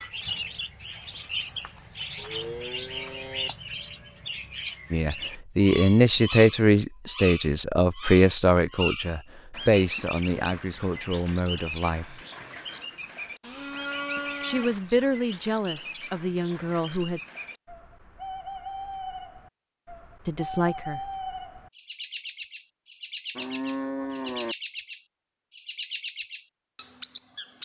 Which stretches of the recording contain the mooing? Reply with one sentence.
The mooing can be heard from 2.1 to 3.5 s, from 13.4 to 14.8 s and from 23.4 to 24.6 s.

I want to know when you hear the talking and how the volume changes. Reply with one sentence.
You can hear the talking from 4.9 to 12.2 s, getting quieter; briefly from 14.4 to 17.2 s; and briefly from 20.2 to 21.1 s.